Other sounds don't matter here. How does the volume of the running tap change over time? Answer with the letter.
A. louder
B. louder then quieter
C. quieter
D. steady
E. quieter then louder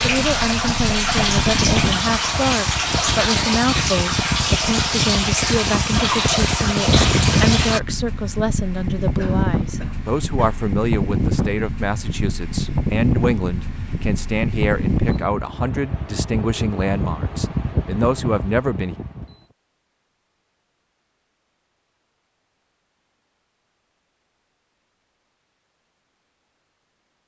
D.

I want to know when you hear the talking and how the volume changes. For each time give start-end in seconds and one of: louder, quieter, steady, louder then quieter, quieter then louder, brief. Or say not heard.
0.0-18.9 steady.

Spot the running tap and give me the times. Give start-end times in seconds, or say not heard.
0.0-7.8.